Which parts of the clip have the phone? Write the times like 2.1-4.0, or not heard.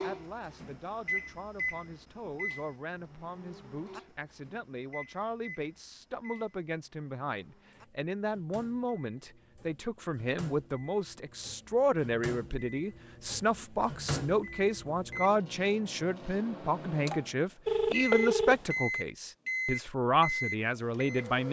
17.6-18.8.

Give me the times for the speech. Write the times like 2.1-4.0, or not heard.
0.0-21.4.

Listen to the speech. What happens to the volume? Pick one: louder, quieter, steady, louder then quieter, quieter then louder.
louder.